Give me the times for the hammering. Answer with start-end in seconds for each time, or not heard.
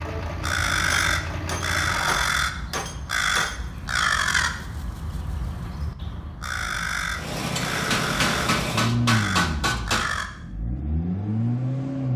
0.9-3.5, 7.5-10.1.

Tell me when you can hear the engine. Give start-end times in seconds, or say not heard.
0.0-2.4, 7.1-12.1.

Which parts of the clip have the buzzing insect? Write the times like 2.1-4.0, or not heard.
not heard.